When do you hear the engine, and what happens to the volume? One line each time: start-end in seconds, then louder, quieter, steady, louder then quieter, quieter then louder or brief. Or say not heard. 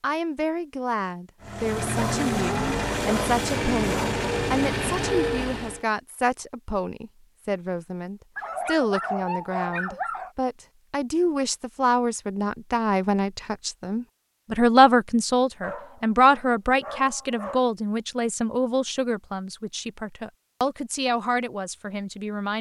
1.4-5.8 steady.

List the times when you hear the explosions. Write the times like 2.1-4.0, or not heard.
not heard.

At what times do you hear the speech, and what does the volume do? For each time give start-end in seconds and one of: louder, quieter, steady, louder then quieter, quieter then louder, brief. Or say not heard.
0.0-22.5 louder then quieter.